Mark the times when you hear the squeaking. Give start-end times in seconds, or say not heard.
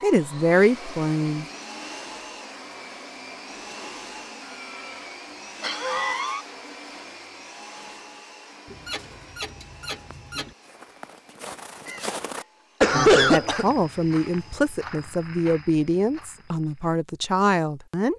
8.7-10.6.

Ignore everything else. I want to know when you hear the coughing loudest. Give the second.
13 s.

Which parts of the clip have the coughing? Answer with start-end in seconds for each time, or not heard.
4.5-6.5, 11.8-13.7.